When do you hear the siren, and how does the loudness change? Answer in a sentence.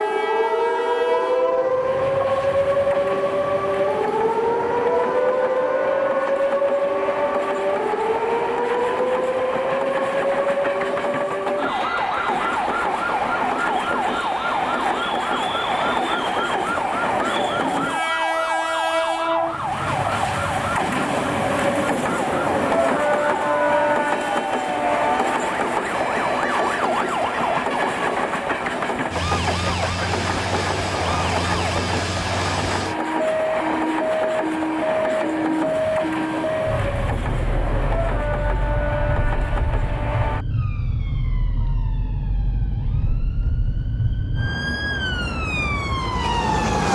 The siren can be heard from 0.0 to 46.9 s, getting quieter.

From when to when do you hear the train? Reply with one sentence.
The train can be heard from 0.0 to 40.5 s.